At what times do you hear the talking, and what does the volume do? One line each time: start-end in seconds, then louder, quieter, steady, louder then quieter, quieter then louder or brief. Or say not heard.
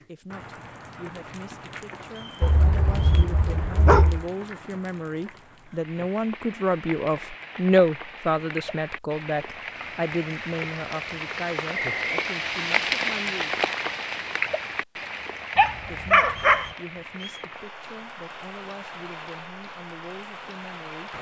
0.0-13.6 louder then quieter
15.8-21.1 steady.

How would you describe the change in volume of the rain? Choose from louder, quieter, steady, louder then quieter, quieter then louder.
louder then quieter.